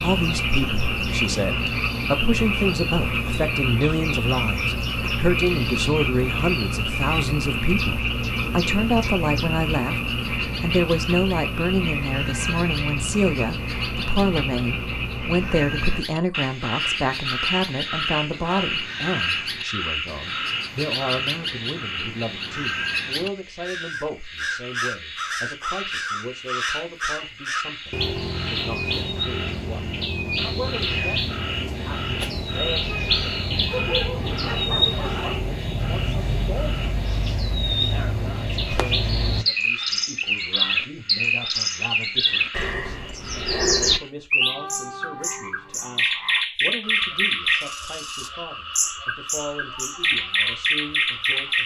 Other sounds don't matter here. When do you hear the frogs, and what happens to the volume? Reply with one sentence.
You can hear the frogs from 0.0 to 51.6 s, getting quieter.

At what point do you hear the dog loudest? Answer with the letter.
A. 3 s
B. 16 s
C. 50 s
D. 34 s
D.